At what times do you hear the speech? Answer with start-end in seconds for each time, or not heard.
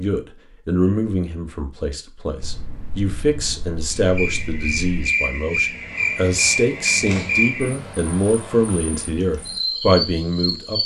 0.0-10.8.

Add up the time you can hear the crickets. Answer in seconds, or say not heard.
7 s.